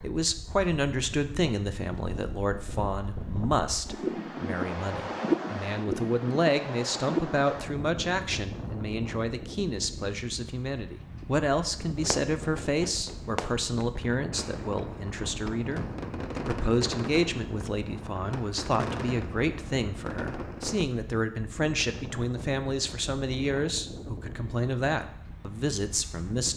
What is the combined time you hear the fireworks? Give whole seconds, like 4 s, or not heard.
9 s.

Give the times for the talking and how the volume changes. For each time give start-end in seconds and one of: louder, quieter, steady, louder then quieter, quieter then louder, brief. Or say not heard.
0.0-26.5 steady.